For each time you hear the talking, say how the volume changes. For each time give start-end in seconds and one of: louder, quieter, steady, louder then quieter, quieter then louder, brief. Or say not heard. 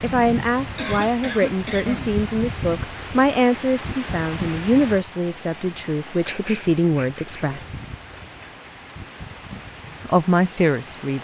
0.0-7.7 steady
10.1-11.1 brief.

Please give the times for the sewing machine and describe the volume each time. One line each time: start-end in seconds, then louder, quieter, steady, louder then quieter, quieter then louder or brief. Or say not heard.
not heard.